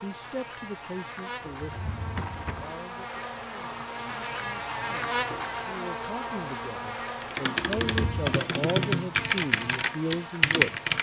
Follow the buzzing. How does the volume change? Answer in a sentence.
The volume of the buzzing goes up, then down.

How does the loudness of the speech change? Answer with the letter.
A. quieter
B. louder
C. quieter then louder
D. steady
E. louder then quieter
C.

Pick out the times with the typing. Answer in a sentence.
You can hear the typing from 7.2 to 10.9 s.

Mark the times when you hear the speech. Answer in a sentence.
The speech can be heard from 0.0 to 10.9 s.